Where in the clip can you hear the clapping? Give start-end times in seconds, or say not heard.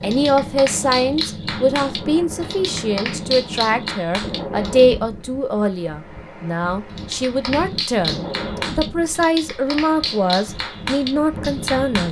0.0-5.0, 7.0-12.0.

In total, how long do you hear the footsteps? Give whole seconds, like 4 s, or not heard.
not heard.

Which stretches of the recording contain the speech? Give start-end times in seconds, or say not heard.
0.0-12.0.